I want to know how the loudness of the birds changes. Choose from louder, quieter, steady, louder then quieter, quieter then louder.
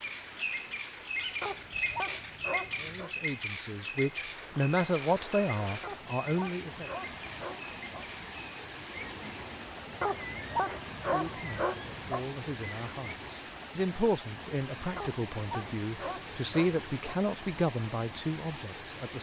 quieter.